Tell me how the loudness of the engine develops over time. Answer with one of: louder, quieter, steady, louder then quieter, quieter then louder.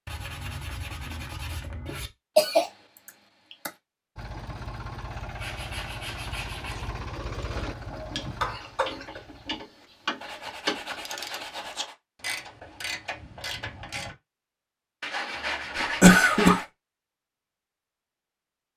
quieter.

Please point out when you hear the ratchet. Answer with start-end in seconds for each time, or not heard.
7.5-14.2.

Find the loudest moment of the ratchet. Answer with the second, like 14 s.
11 s.